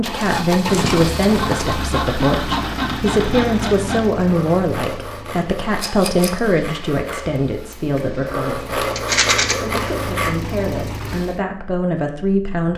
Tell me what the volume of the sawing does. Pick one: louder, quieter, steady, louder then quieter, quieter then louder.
quieter then louder.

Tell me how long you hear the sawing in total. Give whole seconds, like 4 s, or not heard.
10 s.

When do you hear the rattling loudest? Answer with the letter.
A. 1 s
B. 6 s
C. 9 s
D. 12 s
C.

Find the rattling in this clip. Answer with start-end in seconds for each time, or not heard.
0.2-1.8, 5.8-6.4, 8.9-9.6.